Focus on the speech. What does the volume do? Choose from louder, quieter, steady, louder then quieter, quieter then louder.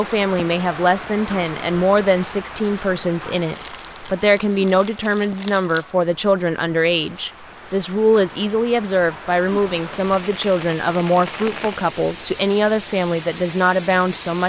steady.